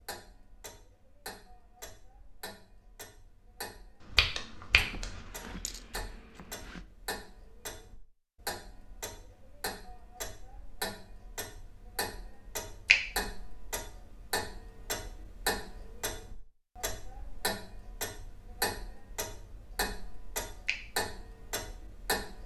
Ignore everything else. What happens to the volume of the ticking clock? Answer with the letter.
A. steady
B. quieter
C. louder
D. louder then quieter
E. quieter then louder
C.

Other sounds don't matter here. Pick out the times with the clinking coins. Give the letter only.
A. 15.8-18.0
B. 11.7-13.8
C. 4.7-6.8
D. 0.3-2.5
C.